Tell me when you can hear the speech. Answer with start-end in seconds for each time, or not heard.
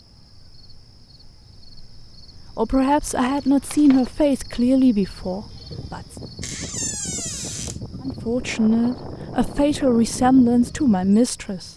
2.5-6.0, 8.0-11.7.